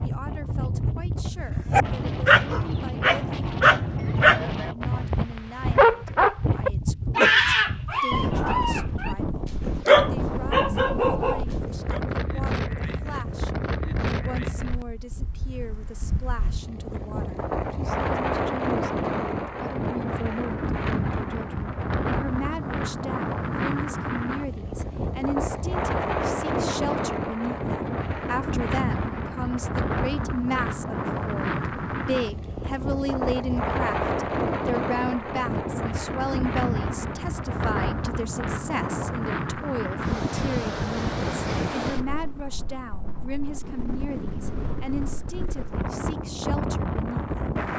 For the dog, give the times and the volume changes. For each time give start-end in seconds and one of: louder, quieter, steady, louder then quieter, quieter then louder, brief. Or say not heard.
1.7-12.0 quieter then louder.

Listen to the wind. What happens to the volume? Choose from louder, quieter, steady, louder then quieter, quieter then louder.
steady.